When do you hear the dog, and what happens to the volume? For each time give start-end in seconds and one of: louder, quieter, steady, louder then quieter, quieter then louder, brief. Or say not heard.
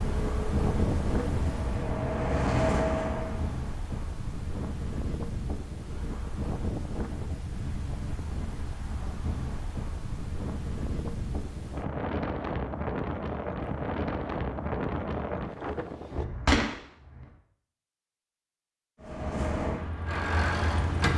not heard.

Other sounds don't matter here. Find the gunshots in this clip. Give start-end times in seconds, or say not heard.
16.1-17.2.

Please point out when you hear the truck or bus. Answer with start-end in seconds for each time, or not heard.
0.0-3.6, 19.0-21.1.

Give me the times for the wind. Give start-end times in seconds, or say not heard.
0.0-16.2.